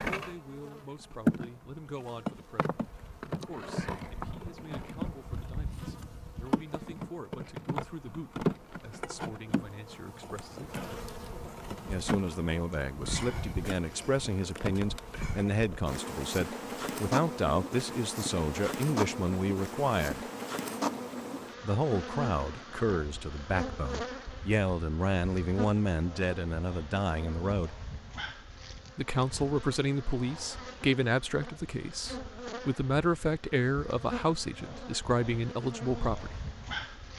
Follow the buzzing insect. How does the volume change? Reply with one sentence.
The loudness of the buzzing insect goes down.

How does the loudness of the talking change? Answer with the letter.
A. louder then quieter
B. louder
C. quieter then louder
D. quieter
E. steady
B.